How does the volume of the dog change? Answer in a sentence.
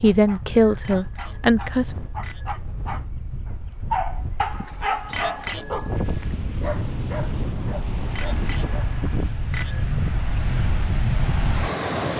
The loudness of the dog goes up, then down.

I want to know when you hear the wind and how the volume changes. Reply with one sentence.
You can hear the wind from 0.0 to 12.1 s, getting louder.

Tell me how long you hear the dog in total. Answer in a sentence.
You can hear the dog for 9 seconds altogether.